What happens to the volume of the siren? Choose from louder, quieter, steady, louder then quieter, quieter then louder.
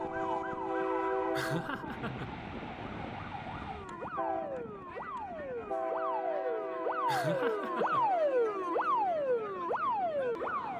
louder.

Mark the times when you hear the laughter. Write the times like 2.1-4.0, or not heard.
1.3-2.4, 7.0-8.1.